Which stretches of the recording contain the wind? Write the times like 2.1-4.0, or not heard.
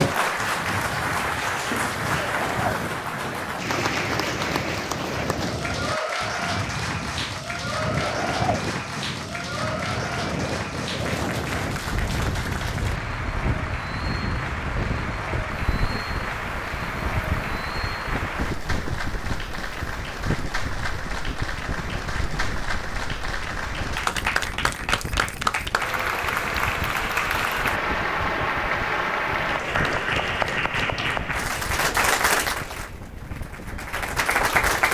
0.2-34.8.